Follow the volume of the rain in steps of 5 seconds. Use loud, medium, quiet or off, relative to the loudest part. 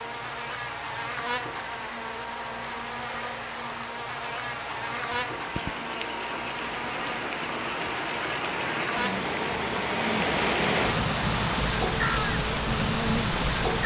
quiet, medium, loud.